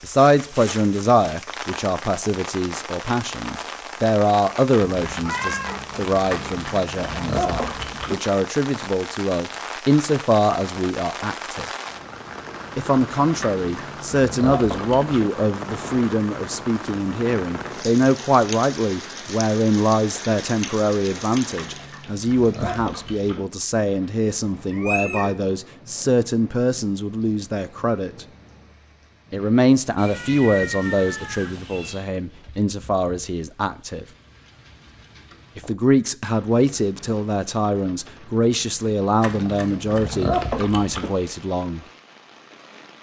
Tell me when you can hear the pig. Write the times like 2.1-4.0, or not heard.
6.2-8.2, 13.4-15.3, 21.6-23.4, 39.2-41.1.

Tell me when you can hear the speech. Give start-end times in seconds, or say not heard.
0.0-11.7, 12.8-28.2, 29.3-34.0, 35.5-41.9.